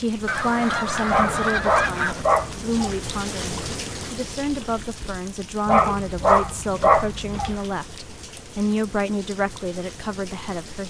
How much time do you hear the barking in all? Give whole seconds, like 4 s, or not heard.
4 s.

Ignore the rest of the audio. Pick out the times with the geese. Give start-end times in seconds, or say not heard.
0.2-2.2.